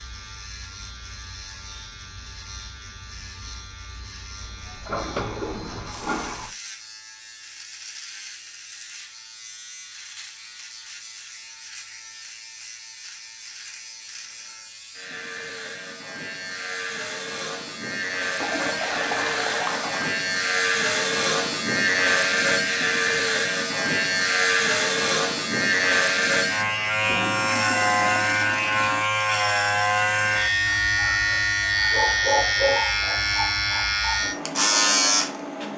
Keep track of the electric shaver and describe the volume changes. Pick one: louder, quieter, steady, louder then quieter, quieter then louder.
louder.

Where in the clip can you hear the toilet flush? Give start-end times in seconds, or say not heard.
4.4-6.5, 18.4-20.1, 26.6-29.1.